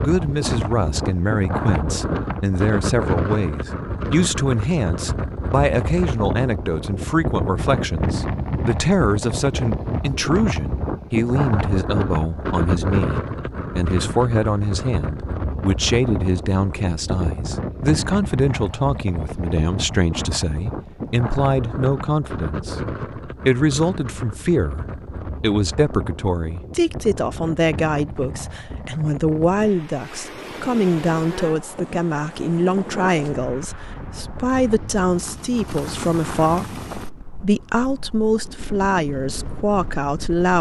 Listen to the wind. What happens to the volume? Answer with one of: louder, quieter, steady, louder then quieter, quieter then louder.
quieter.